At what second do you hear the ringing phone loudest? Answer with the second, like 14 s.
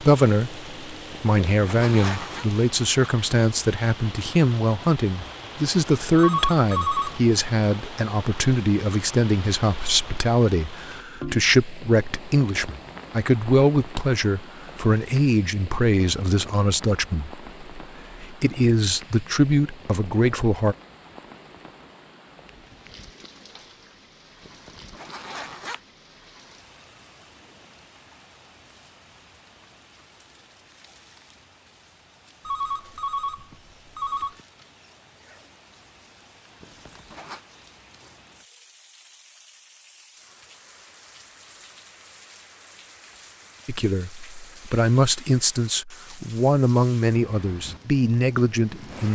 7 s.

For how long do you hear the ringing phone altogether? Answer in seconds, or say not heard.
3 s.